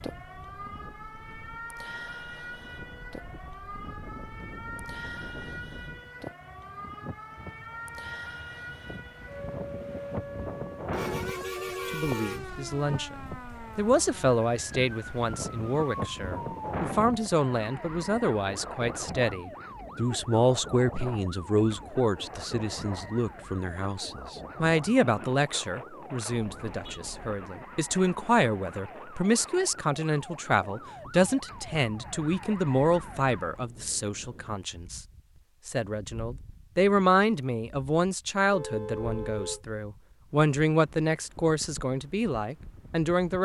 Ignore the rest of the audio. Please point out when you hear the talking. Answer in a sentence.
You can hear the talking from 11.8 to 35.0 s and from 35.6 to 43.4 s.